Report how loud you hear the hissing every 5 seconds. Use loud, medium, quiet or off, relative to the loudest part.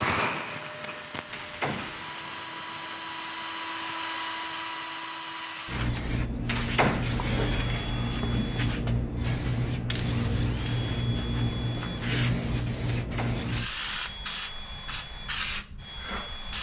medium, loud, loud, medium.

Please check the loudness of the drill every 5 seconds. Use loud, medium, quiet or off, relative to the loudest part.
loud, loud, medium, medium.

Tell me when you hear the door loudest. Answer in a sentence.
The loudest moment of the door is at 7 seconds.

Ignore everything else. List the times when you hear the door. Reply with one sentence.
You can hear the door from 1.3 to 2.0 s, from 6.5 to 7.2 s and from 12.9 to 13.5 s.